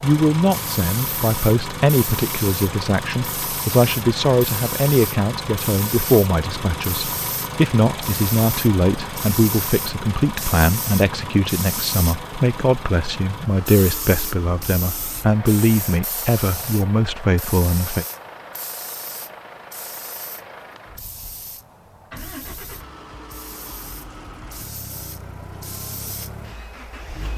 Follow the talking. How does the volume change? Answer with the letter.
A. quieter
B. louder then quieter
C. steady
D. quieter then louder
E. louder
C.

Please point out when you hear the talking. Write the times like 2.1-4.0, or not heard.
0.0-18.1.